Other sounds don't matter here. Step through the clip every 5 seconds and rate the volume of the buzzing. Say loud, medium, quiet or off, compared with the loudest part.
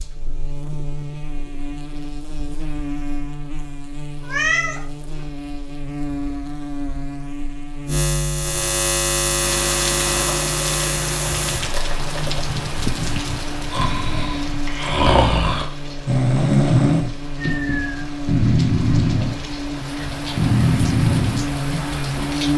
medium, loud, loud, medium, loud.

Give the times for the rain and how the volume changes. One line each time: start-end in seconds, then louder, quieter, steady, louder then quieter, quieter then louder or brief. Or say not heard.
9.3-22.5 quieter then louder.